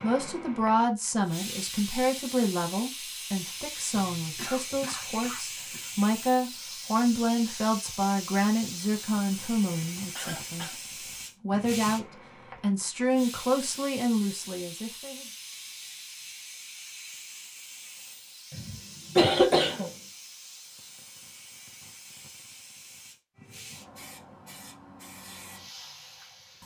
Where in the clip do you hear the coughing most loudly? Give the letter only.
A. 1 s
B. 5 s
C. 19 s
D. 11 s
C.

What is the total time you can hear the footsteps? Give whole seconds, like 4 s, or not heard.
not heard.